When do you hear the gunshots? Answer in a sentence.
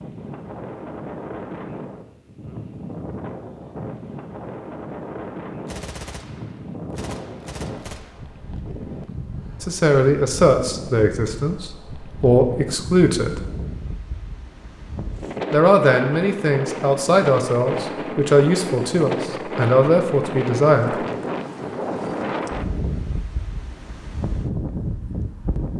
The gunshots can be heard from 5.7 to 8.2 s.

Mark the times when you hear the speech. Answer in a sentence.
You can hear the speech from 9.6 to 13.4 s and from 15.5 to 20.9 s.